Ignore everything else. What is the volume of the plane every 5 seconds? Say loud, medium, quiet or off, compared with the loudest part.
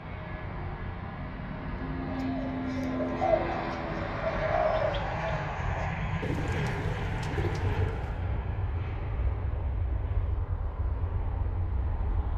loud, loud, medium.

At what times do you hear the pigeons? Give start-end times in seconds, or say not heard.
2.0-8.2.